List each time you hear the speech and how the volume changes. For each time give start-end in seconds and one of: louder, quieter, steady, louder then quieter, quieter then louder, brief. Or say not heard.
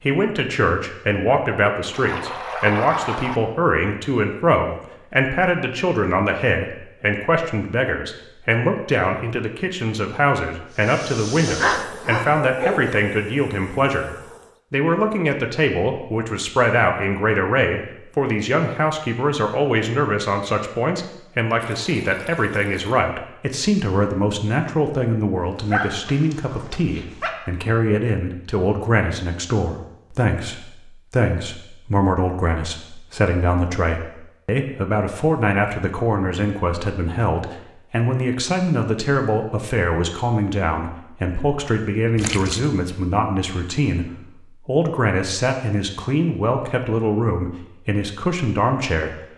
0.0-49.2 steady.